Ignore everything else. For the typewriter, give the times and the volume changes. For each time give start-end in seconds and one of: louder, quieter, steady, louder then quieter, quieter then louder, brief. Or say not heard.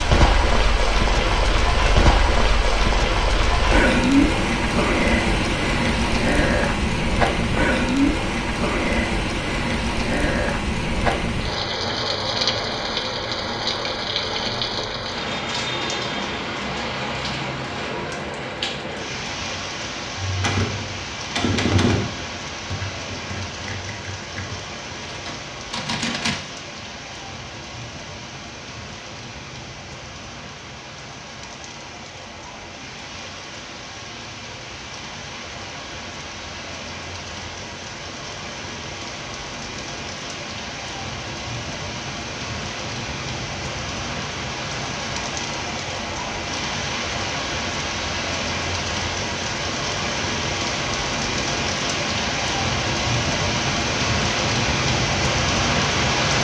20.2-26.4 quieter then louder.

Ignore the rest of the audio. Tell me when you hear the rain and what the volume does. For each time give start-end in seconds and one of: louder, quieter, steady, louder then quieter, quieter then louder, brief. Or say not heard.
0.0-56.3 quieter then louder.